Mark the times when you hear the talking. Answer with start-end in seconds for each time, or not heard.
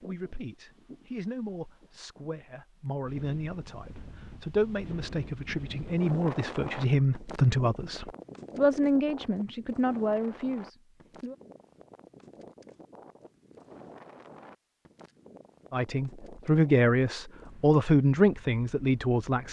0.0-11.3, 15.7-19.4.